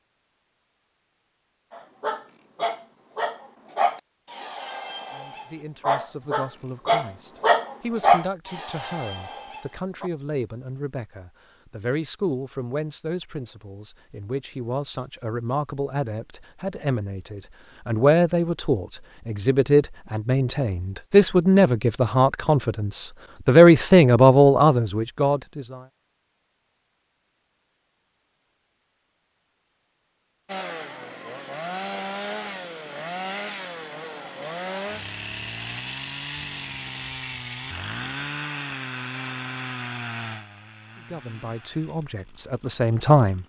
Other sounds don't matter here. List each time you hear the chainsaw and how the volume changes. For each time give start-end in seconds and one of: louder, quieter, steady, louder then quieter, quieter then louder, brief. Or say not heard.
30.4-43.4 quieter.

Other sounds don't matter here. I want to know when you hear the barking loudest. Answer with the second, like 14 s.
8 s.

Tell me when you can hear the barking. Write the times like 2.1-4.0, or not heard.
1.7-10.1.